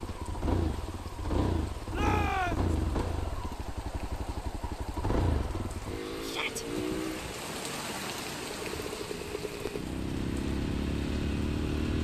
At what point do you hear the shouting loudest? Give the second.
2 s.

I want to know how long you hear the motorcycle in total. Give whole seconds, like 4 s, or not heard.
12 s.